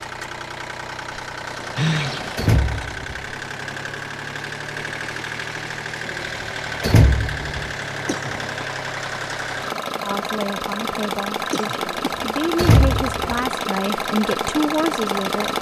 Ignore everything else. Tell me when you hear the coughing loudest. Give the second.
2 s.